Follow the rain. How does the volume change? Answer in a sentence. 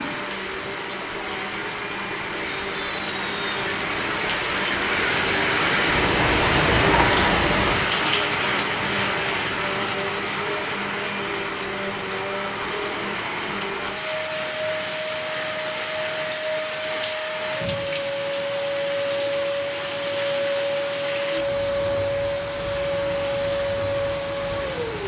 The loudness of the rain goes up, then down.